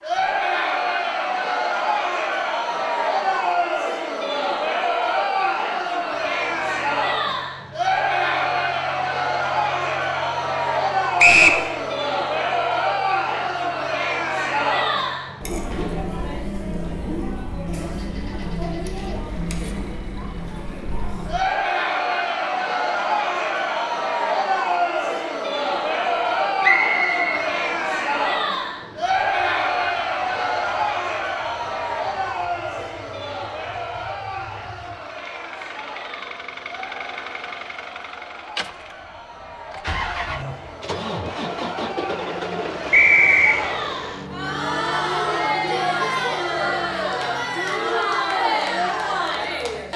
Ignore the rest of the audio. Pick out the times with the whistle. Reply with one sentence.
You can hear the whistle from 11.2 to 11.6 s, from 26.6 to 27.4 s and from 42.9 to 43.6 s.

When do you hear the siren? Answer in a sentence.
You can't hear the siren here.